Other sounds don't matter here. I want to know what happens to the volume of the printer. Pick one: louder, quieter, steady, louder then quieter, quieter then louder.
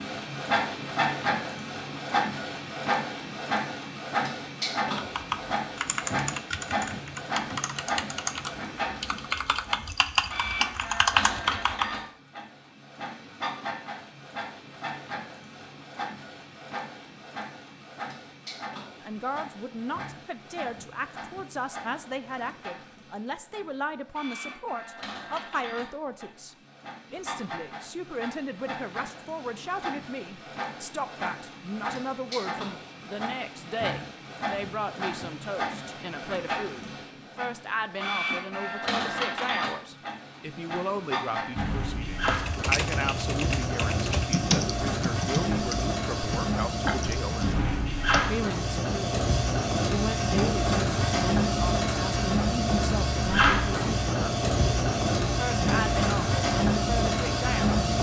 quieter then louder.